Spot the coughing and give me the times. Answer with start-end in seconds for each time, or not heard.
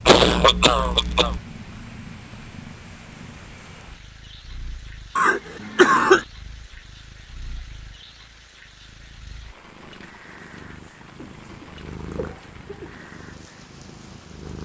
0.1-1.4, 5.2-6.2, 11.2-13.1.